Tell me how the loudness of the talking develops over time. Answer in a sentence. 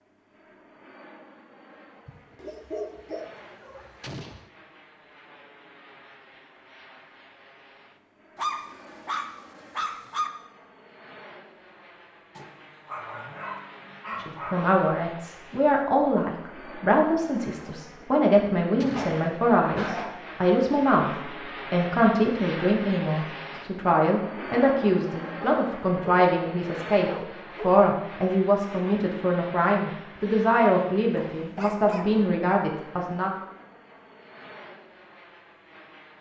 The volume of the talking stays about the same.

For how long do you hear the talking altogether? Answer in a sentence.
You can hear the talking for 19 seconds altogether.